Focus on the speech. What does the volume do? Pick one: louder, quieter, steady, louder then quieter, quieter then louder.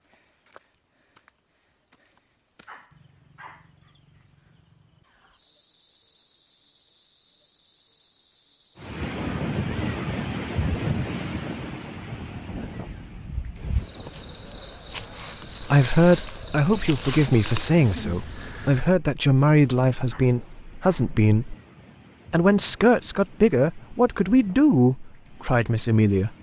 steady.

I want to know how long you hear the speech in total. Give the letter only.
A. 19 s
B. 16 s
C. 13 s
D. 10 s
D.